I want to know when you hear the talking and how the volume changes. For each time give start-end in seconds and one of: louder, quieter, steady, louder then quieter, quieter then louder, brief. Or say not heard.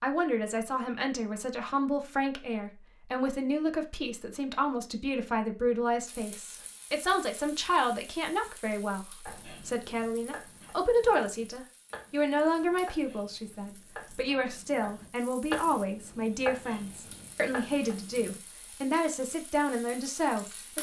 0.0-20.7 steady.